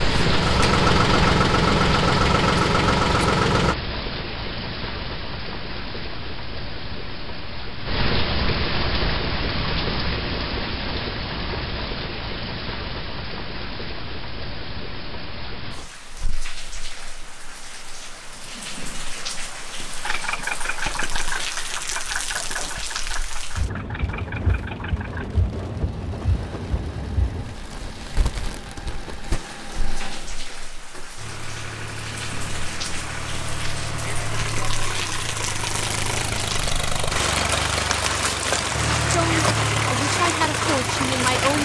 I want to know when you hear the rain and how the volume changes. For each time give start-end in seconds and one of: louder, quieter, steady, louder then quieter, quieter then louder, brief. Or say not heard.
0.0-41.5 quieter then louder.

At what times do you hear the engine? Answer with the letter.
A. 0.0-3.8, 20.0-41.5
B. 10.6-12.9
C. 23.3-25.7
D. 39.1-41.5
A.